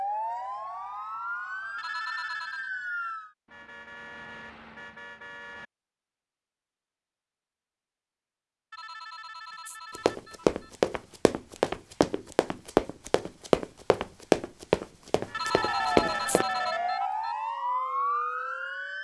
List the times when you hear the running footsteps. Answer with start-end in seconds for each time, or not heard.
9.9-16.4.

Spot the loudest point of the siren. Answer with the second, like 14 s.
18 s.